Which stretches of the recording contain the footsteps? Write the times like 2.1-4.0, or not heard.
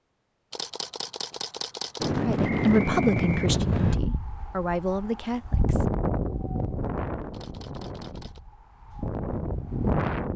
not heard.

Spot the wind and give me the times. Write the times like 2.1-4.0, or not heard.
2.0-10.3.